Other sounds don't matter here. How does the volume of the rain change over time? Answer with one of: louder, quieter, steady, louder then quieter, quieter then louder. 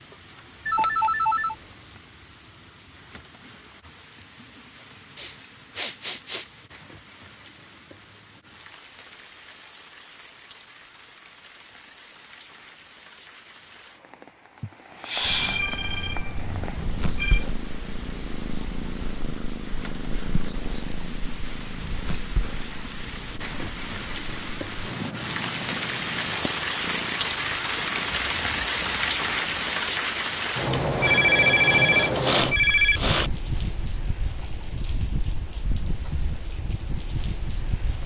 louder.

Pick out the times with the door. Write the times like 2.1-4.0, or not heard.
not heard.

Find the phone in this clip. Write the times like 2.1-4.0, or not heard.
0.7-1.6, 15.2-17.4, 31.0-33.0.